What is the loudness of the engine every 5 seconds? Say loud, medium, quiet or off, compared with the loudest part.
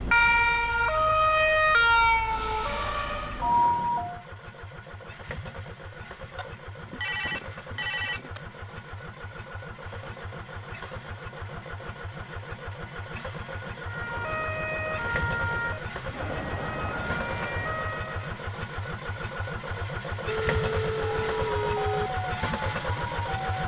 quiet, medium, medium, loud, loud.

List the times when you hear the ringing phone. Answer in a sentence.
The ringing phone can be heard from 6.3 to 8.4 s and from 20.2 to 22.1 s.